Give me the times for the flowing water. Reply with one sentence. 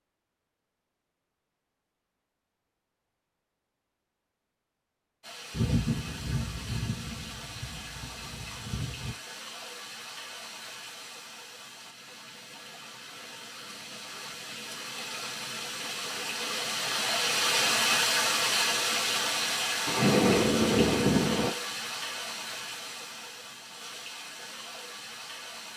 You can hear the flowing water from 5.2 to 25.7 s.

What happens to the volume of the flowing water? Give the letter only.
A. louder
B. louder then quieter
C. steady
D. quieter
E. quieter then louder
B.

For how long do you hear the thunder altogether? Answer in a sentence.
You can hear the thunder for 5 seconds altogether.